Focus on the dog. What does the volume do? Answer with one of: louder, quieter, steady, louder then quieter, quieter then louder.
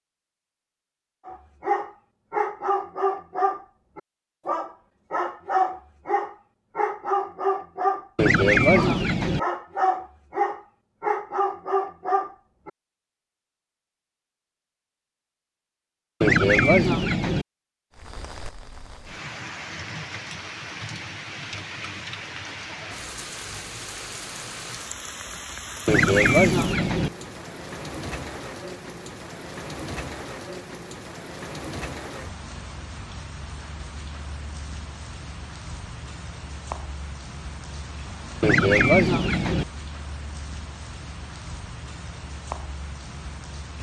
steady.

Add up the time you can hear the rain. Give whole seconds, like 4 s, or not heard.
26 s.